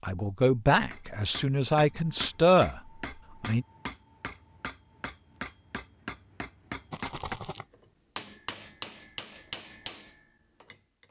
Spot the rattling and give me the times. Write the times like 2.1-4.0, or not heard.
6.9-7.7.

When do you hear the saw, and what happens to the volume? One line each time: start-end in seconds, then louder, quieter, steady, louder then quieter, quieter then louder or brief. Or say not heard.
not heard.